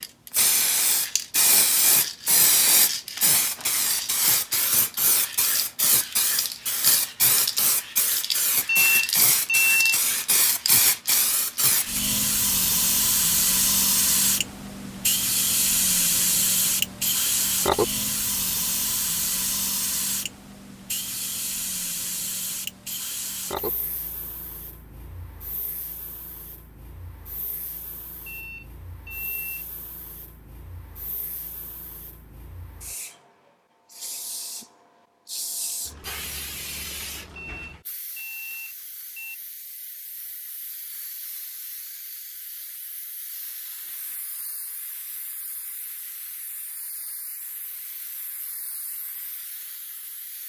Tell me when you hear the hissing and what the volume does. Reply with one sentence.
You can hear the hissing from 0.0 to 50.4 s, getting quieter.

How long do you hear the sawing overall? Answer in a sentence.
You can't hear the sawing here.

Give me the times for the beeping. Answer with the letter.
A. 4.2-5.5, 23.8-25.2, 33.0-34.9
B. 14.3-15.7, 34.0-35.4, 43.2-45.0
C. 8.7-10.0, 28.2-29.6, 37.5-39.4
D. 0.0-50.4
C.